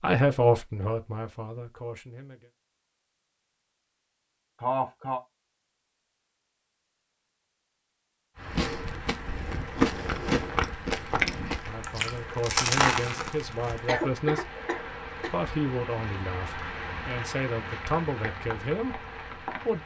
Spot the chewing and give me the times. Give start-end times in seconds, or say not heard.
8.4-14.0.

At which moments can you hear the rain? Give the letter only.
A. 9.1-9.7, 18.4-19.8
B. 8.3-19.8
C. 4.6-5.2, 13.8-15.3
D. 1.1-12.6
B.